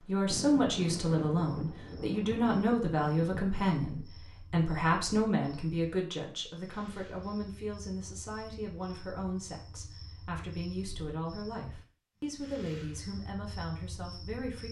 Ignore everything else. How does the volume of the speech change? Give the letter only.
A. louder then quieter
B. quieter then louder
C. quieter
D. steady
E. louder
C.